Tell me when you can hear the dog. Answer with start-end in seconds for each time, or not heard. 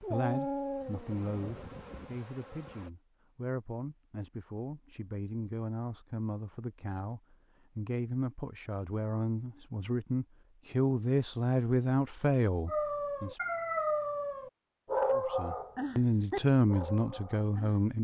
0.0-1.8, 12.7-17.8.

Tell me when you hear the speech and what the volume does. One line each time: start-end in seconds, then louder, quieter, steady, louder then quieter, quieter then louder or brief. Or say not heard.
0.0-13.4 louder
15.2-17.9 brief.